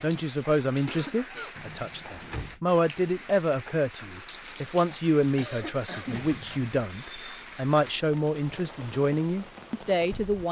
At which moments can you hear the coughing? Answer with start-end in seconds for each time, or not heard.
0.7-1.6, 5.3-6.2.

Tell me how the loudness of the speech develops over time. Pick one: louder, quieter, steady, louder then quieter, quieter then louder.
steady.